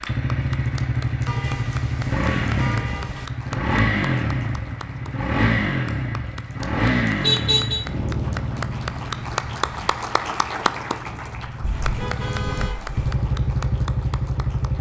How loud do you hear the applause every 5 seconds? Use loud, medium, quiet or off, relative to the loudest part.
medium, loud, loud.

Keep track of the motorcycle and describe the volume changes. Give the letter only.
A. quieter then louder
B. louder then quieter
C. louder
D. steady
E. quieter
A.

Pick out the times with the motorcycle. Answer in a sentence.
You can hear the motorcycle from 0.0 to 14.7 s.